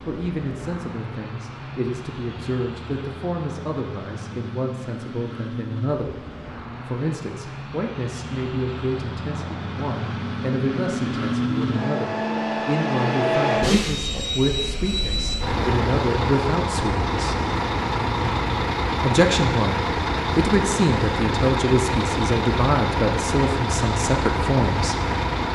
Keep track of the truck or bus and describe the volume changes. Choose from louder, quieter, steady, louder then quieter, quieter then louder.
louder.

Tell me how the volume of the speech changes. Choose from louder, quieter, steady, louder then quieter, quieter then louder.
louder.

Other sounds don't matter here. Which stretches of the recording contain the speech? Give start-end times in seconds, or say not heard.
0.0-17.4, 19.0-25.0.